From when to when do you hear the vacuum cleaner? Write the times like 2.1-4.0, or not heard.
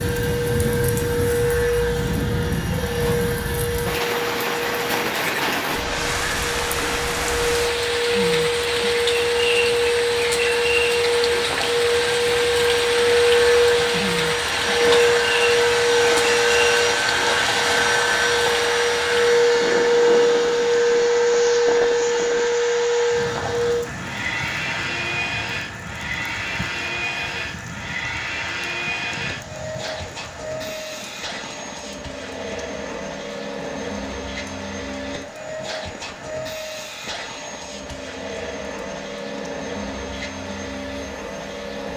0.0-41.9.